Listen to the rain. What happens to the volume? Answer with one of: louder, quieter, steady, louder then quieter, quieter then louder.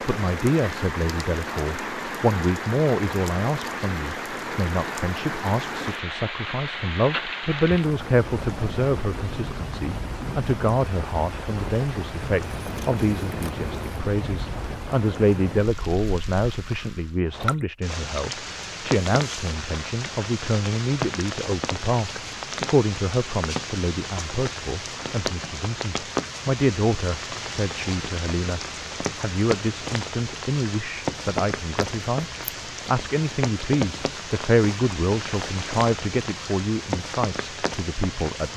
steady.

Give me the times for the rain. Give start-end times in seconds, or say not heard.
0.0-38.5.